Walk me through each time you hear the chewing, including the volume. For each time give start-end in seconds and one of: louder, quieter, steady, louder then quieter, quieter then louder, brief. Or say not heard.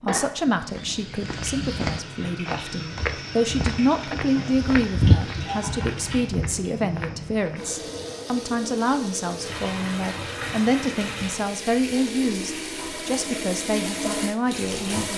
not heard.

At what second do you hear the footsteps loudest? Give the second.
5 s.